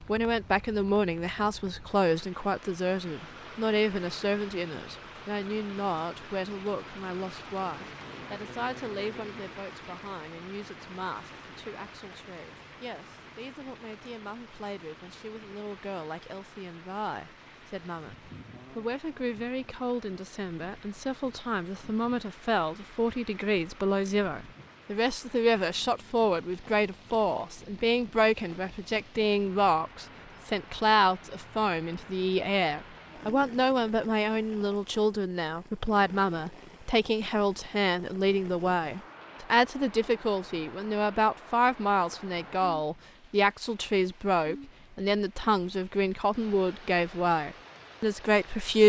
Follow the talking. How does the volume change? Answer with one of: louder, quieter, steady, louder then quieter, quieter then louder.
quieter then louder.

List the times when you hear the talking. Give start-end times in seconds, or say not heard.
0.0-48.8.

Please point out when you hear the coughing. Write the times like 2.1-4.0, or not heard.
not heard.